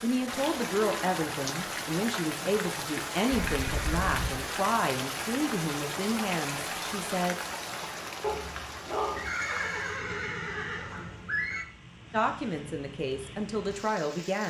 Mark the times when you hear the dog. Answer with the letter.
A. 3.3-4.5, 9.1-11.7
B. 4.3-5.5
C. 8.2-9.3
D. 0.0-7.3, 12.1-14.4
C.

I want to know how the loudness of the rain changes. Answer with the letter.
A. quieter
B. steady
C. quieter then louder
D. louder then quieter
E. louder
A.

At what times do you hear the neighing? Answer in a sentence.
The neighing can be heard from 3.3 to 4.5 s and from 9.1 to 11.7 s.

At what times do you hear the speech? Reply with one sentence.
The speech can be heard from 0.0 to 7.3 s and from 12.1 to 14.4 s.